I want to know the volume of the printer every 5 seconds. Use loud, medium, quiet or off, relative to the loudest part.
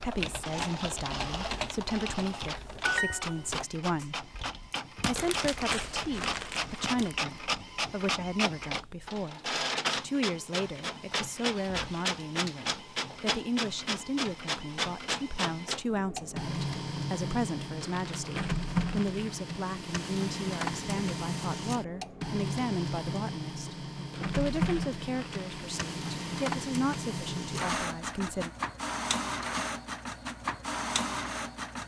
medium, loud, loud, loud, loud, loud, loud.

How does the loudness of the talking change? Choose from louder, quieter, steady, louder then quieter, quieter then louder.
steady.